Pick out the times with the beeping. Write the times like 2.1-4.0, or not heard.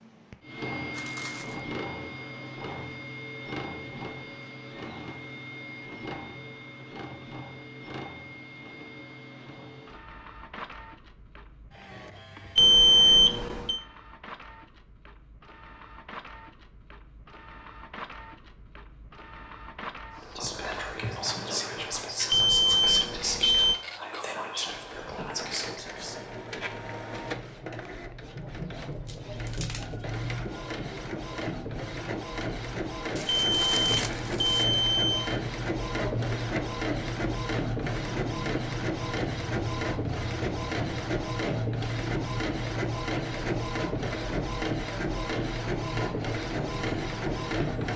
12.6-13.8, 22.3-23.8, 33.2-35.4.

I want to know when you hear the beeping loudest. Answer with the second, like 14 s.
13 s.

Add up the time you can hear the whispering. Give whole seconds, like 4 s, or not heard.
6 s.